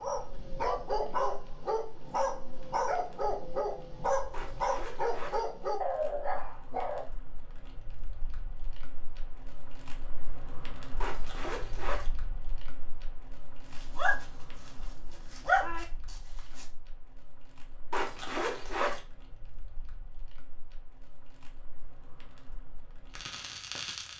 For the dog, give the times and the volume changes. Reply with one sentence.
The dog can be heard from 0.0 to 7.0 s, at a steady volume; and briefly from 13.7 to 16.6 s.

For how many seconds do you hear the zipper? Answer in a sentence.
You can hear the zipper for 3 seconds altogether.